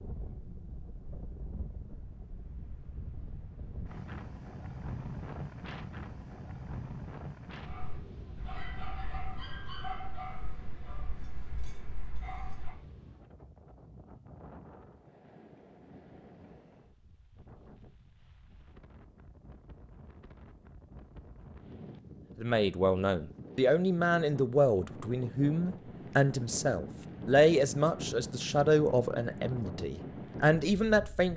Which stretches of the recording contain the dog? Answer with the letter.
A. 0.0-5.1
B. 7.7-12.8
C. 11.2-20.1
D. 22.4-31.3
B.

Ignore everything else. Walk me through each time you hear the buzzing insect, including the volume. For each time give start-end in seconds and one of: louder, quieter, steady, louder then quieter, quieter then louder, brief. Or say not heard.
not heard.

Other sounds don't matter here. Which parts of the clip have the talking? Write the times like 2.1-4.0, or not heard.
22.4-31.3.